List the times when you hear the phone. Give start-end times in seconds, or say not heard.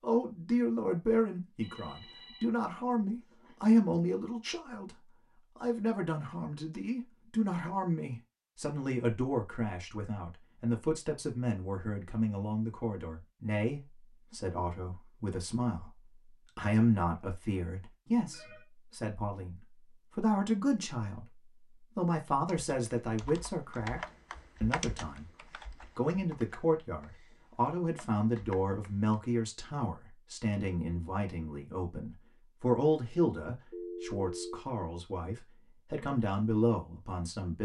1.6-3.6, 18.1-18.6, 33.7-34.6.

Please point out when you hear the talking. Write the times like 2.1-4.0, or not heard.
0.0-25.4, 25.9-37.6.